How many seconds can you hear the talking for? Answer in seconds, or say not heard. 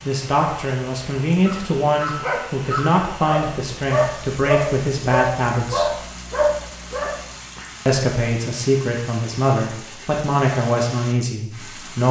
10 s.